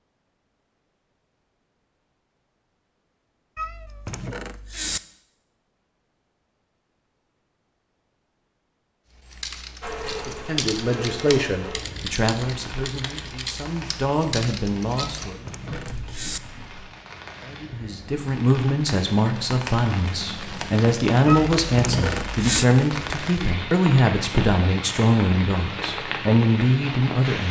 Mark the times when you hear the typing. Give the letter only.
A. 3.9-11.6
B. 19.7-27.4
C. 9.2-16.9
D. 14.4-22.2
C.